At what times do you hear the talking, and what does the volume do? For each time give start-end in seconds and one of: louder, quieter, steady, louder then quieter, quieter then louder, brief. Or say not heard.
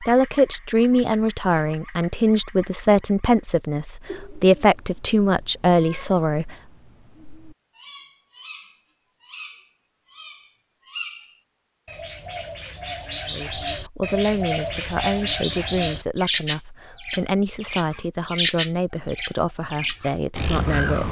0.0-6.5 steady
13.2-21.0 steady.